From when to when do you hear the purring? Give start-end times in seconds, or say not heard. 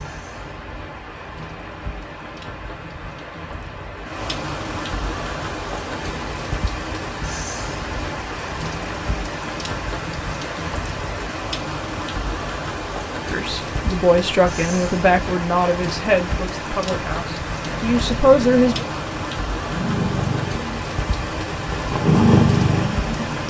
17.6-23.4.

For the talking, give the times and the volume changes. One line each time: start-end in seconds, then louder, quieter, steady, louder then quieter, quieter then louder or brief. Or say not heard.
13.2-18.9 quieter then louder.